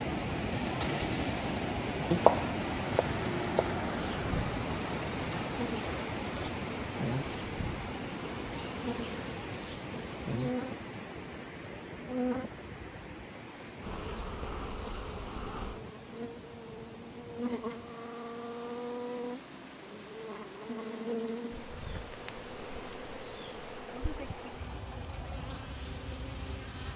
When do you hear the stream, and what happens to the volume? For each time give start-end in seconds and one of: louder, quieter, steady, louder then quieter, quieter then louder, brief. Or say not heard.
0.0-26.9 quieter.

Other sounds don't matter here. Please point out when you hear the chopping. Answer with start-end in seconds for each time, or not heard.
2.1-3.8.